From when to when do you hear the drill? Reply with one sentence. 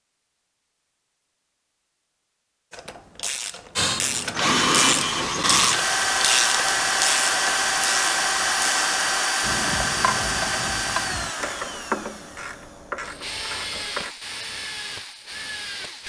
You can hear the drill from 3.8 to 16.0 s.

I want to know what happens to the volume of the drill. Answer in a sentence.
The volume of the drill goes down.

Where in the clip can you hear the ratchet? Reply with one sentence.
The ratchet can be heard from 2.7 to 14.2 s.